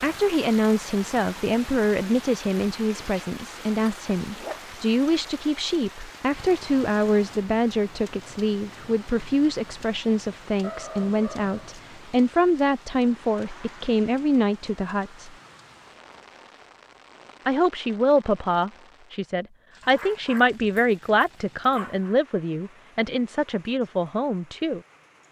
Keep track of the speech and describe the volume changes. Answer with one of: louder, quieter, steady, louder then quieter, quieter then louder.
steady.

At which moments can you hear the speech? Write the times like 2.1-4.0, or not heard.
0.0-15.3, 17.4-24.8.